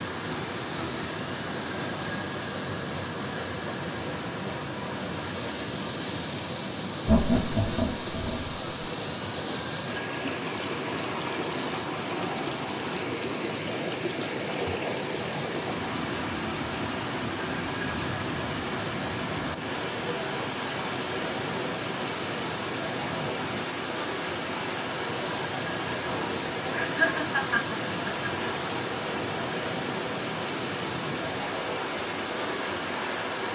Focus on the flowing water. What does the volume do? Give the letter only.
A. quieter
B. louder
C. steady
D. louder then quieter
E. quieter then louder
C.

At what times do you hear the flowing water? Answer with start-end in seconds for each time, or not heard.
0.0-33.5.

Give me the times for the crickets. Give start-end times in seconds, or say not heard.
not heard.